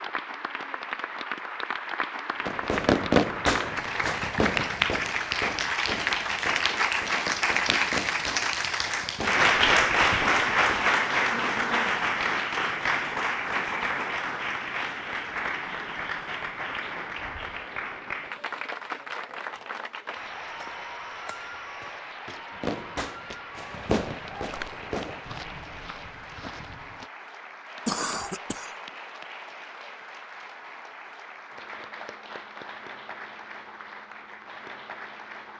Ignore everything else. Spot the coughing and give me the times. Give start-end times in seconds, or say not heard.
27.9-28.8.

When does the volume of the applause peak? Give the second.
10 s.